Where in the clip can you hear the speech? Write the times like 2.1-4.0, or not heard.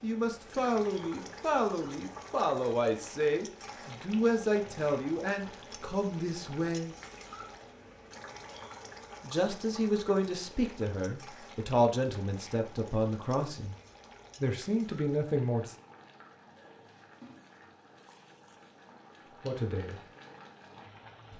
0.0-7.0, 9.2-13.8, 14.4-15.8, 19.3-20.1.